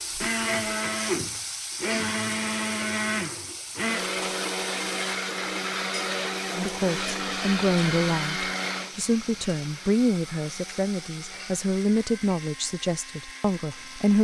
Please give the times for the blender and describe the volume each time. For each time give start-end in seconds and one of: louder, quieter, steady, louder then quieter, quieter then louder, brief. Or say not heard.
0.1-14.1 quieter.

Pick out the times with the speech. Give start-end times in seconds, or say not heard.
6.5-14.1.